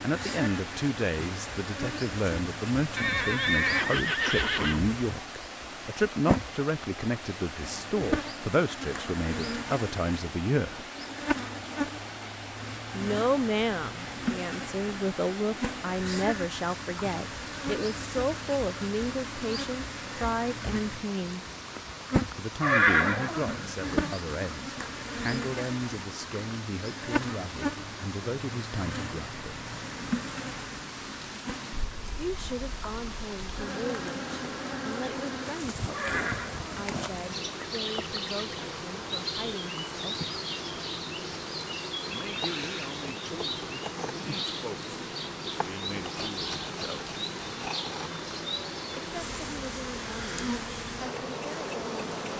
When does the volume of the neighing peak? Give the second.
23 s.